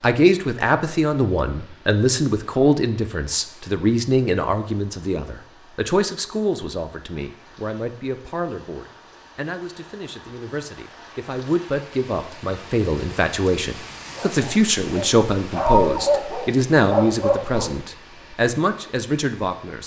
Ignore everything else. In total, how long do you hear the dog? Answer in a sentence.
The dog can be heard for 4 seconds in total.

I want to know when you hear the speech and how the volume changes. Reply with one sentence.
You can hear the speech from 0.0 to 19.8 s, getting quieter then louder.